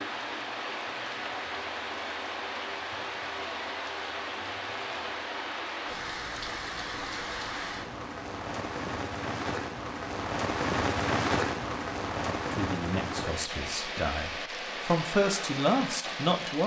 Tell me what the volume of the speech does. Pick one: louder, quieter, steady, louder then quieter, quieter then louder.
quieter then louder.